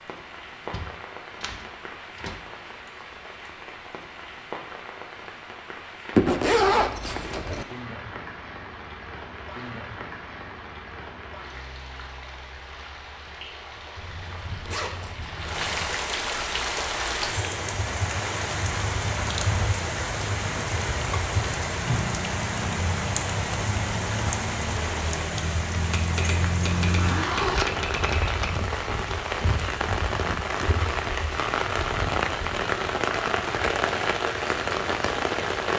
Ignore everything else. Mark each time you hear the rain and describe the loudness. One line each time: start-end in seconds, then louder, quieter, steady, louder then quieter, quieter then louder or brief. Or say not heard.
0.0-35.7 louder.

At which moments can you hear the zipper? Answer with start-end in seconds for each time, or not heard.
6.2-7.7, 13.9-16.0, 26.1-27.7.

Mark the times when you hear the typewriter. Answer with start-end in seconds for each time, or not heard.
0.7-2.4, 25.7-28.6.